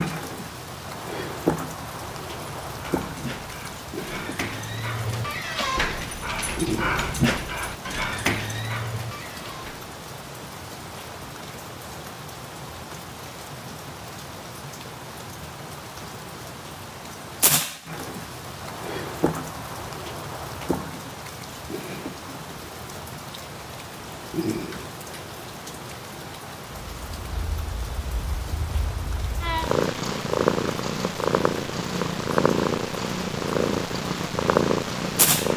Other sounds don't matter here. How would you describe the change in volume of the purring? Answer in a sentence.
The loudness of the purring goes up.